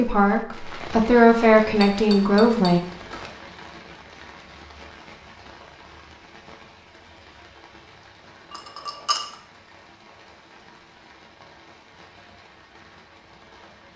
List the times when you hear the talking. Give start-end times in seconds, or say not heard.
0.0-2.8.